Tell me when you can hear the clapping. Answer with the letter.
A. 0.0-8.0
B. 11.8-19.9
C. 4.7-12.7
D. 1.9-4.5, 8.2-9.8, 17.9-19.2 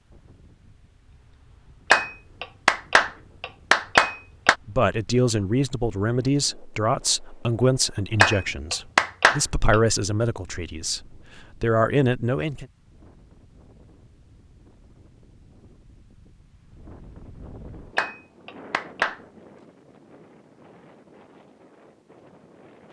D.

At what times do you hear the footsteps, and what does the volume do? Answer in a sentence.
The footsteps can't be heard in this clip.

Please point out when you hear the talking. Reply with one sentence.
You can hear the talking from 4.7 to 12.7 s.